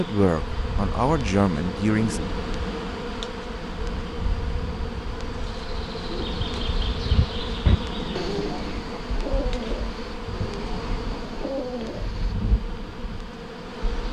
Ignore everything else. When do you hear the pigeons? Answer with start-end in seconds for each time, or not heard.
6.0-12.3.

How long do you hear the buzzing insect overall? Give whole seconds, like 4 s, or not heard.
14 s.